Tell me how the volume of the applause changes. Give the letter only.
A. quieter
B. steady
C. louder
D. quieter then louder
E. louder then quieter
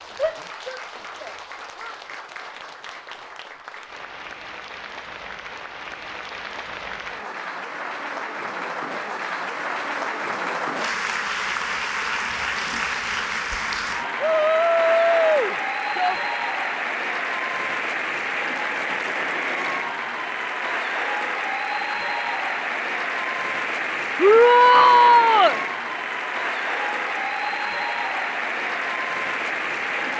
C.